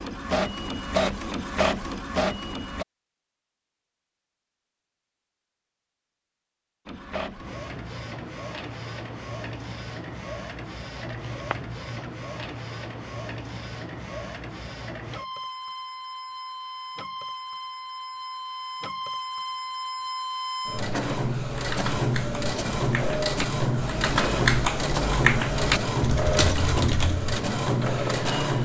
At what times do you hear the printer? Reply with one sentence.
You can hear the printer from 0.0 to 2.9 s and from 6.8 to 28.6 s.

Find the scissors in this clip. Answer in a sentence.
You can hear the scissors from 10.9 to 12.4 s.